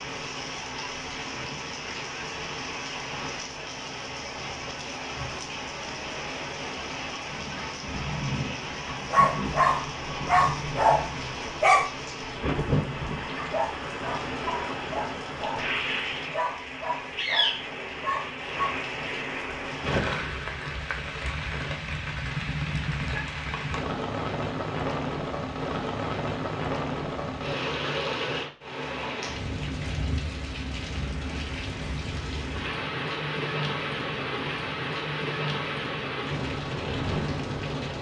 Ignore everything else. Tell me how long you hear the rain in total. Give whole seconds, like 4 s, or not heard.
38 s.